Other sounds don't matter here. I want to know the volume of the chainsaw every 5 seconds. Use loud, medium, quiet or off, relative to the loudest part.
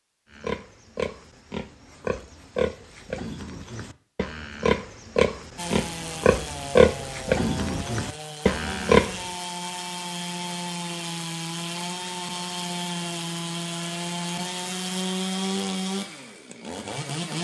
off, medium, loud, loud.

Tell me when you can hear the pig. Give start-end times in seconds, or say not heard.
0.3-9.2.